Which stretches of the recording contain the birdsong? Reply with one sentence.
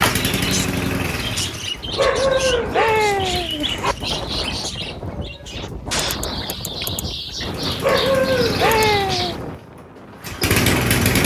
You can hear the birdsong from 0.1 to 9.3 s.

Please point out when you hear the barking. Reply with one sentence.
You can hear the barking from 1.9 to 4.0 s and from 7.8 to 9.3 s.